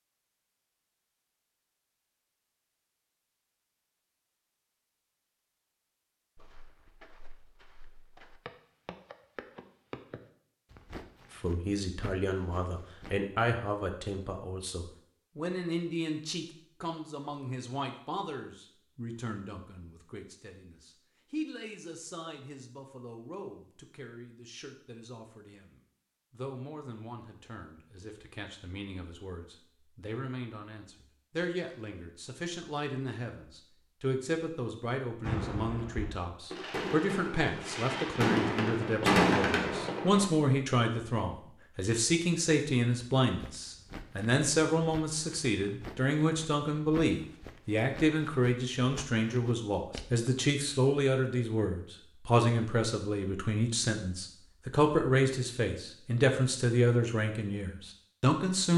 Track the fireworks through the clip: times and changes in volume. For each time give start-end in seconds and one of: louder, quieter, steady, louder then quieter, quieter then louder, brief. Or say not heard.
35.2-40.2 louder.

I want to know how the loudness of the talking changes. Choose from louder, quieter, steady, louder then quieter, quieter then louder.
quieter then louder.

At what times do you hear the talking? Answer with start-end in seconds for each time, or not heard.
11.3-58.7.